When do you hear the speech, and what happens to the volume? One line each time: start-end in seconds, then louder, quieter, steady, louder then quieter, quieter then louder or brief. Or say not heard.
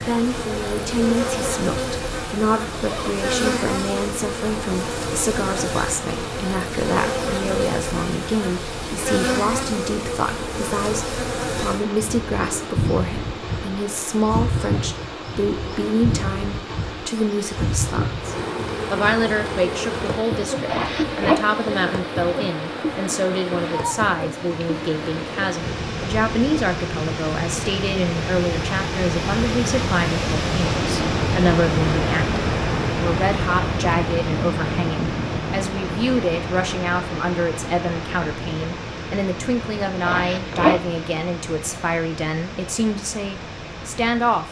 0.1-44.4 steady.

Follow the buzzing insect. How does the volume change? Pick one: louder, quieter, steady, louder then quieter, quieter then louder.
steady.